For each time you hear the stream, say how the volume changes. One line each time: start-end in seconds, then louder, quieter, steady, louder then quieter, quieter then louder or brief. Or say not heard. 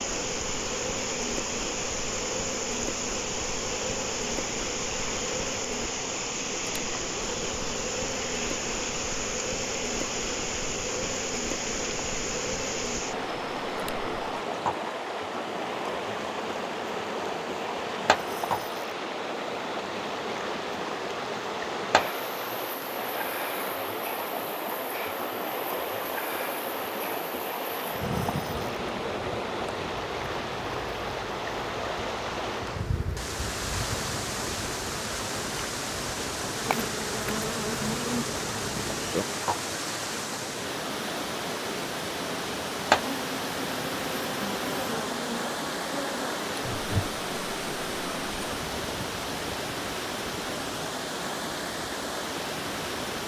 0.0-53.2 steady.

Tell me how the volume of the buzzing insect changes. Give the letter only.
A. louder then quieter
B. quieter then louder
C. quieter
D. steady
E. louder
D.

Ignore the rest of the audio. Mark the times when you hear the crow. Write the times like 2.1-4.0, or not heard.
not heard.